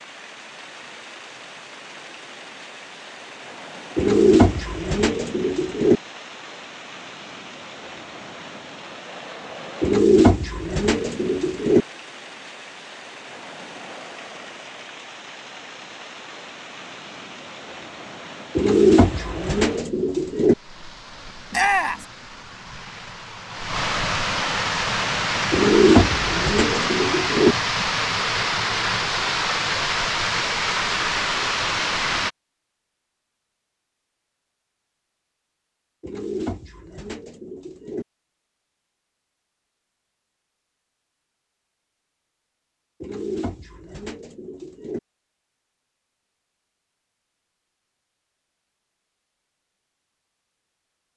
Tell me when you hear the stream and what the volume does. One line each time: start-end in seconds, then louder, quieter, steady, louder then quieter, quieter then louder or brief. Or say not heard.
0.0-32.3 louder.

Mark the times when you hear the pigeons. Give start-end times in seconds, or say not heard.
4.0-6.0, 9.8-11.8, 18.6-20.6, 25.5-27.6, 36.0-38.0, 43.0-45.0.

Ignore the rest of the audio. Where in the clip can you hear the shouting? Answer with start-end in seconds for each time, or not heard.
21.5-22.1.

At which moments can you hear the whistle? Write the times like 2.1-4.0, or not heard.
not heard.